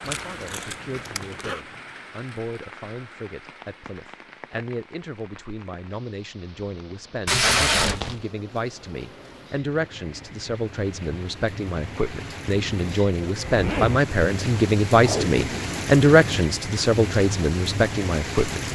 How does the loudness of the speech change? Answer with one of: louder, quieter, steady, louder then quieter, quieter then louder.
louder.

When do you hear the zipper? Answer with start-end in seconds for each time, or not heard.
0.0-1.6, 13.4-14.1.